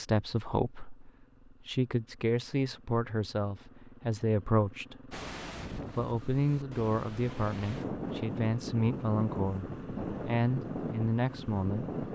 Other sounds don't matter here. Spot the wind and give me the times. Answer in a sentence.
The wind can be heard from 5.1 to 12.0 s.